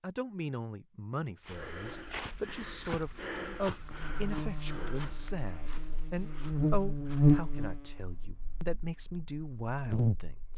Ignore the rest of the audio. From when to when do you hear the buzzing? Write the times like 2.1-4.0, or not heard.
3.8-10.5.